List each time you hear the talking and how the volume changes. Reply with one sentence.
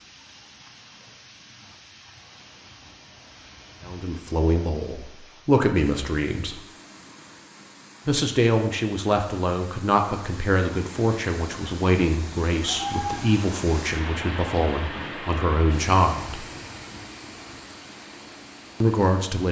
You can hear the talking briefly from 3.9 to 6.6 s; from 8.1 to 16.4 s, at a steady volume; and briefly from 18.8 to 19.4 s.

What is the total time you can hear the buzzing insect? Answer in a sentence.
You can't hear the buzzing insect here.